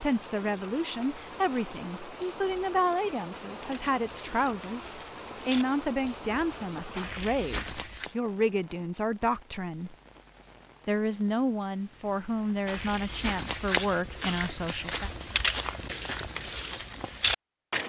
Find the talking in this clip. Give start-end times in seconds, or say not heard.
0.0-9.9, 10.8-15.1.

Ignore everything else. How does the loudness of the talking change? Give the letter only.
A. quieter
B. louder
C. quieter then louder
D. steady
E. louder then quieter
D.